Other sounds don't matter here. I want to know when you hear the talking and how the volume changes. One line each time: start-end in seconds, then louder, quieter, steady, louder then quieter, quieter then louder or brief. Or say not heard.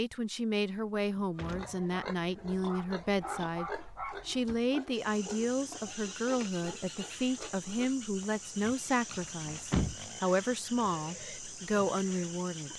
0.0-12.7 steady.